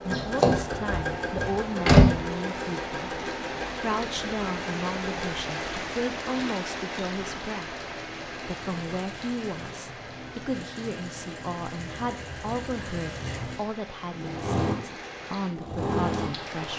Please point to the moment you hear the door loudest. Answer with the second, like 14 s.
2 s.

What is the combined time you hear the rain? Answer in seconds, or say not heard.
17 s.